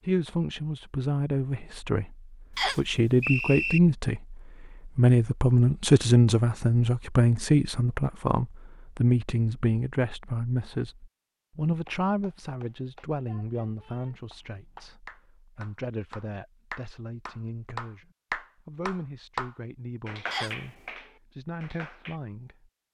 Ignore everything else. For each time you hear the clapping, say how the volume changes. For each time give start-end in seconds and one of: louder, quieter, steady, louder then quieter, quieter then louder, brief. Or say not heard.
11.7-22.2 louder then quieter.